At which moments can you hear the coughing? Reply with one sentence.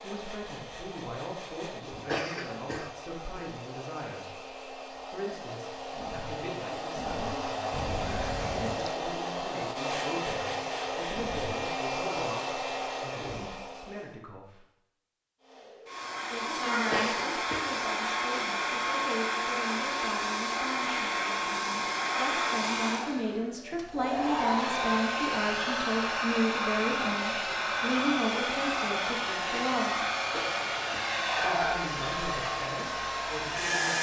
The coughing can be heard from 2.0 to 2.9 s, from 16.9 to 17.8 s and from 30.3 to 31.2 s.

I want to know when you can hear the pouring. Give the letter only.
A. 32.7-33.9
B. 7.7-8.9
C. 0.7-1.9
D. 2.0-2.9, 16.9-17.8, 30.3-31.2
B.